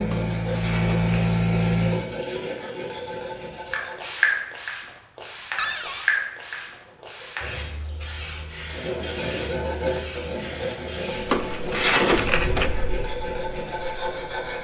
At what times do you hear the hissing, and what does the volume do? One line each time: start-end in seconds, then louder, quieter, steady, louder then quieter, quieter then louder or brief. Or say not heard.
0.0-14.5 quieter.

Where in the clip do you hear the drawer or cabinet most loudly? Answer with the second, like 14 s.
12 s.